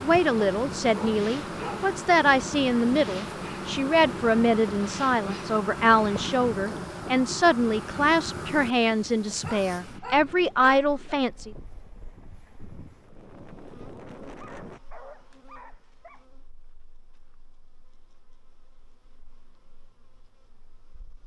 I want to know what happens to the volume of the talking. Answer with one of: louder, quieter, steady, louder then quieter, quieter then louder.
steady.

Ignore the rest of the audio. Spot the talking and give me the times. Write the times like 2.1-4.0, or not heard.
0.0-11.5.